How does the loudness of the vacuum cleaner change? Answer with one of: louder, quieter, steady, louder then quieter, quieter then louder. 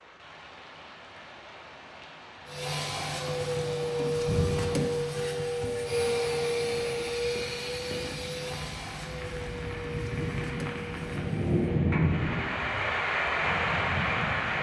quieter.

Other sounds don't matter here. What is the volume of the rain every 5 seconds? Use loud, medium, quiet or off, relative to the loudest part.
quiet, quiet, loud.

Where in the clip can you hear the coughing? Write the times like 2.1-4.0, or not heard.
not heard.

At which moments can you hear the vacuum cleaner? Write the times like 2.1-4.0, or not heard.
2.5-11.8.